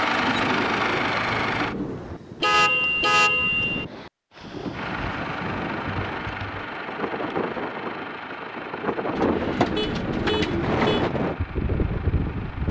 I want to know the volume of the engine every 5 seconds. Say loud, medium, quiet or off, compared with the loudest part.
loud, medium, quiet.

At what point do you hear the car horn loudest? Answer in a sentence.
The loudest moment of the car horn is at 3 seconds.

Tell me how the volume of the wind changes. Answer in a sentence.
The volume of the wind goes up.